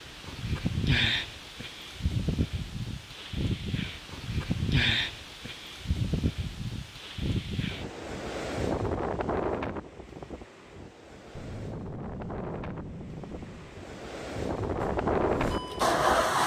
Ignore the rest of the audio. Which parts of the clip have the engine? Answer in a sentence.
You can hear the engine from 14.8 to 16.4 s.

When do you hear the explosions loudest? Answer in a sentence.
The volume of the explosions peaks at 12 seconds.